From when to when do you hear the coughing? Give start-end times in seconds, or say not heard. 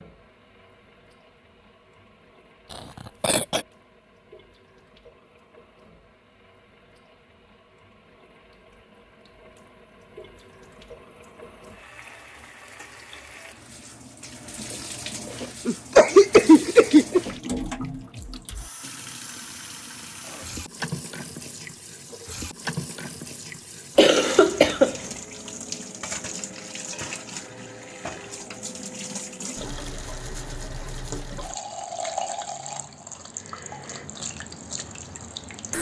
2.7-3.6, 15.7-17.2, 23.9-24.9.